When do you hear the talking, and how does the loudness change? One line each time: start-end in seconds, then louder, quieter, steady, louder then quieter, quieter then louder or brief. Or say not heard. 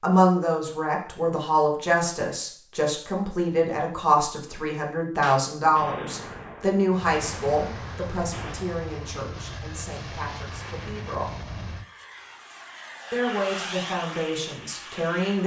0.0-11.4 quieter
13.1-15.4 brief.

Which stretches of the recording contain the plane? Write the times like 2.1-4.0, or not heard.
6.9-15.4.